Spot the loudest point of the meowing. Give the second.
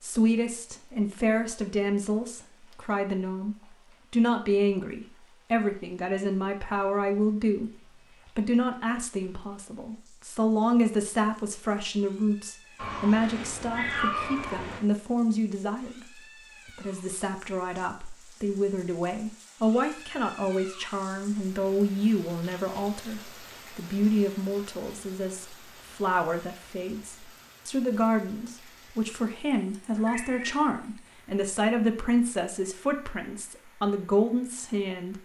14 s.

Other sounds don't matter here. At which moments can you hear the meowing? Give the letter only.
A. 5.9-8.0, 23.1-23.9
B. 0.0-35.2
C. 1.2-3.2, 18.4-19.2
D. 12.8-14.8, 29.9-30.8
D.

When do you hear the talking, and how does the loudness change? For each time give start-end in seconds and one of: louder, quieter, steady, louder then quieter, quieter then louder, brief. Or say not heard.
0.0-35.2 steady.